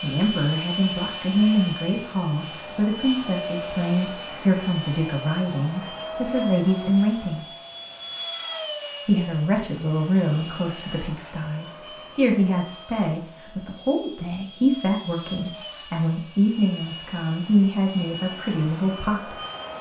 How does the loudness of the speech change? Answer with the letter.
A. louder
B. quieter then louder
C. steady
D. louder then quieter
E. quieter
C.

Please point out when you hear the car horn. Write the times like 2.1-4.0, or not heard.
not heard.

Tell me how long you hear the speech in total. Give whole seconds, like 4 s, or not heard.
18 s.